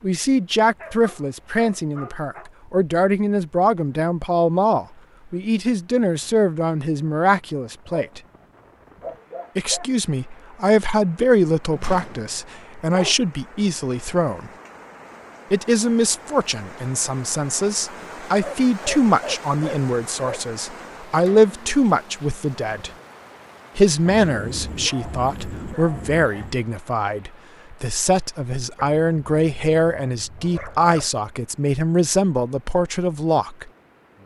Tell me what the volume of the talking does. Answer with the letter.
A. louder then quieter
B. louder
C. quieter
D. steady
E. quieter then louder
D.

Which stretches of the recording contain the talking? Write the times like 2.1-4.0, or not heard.
0.0-8.2, 9.6-14.5, 15.5-22.9, 23.8-33.7.